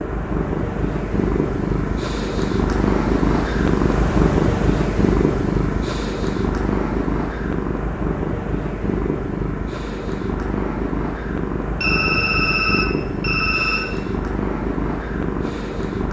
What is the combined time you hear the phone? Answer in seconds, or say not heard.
2 s.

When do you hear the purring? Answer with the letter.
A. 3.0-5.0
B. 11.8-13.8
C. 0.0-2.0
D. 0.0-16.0
D.